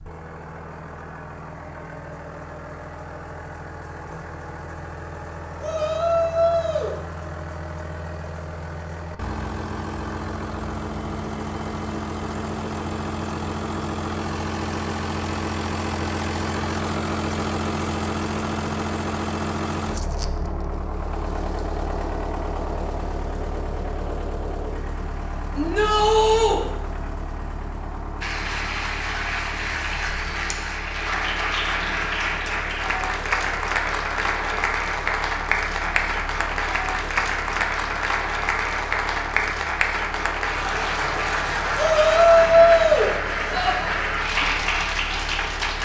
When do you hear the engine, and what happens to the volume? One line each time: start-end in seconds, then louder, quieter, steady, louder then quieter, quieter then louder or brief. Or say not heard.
0.0-45.8 louder then quieter.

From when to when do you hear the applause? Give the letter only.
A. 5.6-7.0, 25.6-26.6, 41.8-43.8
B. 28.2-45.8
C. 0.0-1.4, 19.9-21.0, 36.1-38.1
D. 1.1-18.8
B.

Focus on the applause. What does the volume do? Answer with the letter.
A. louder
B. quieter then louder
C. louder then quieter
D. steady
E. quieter
D.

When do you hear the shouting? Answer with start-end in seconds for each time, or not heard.
5.6-7.0, 25.6-26.6, 41.8-43.8.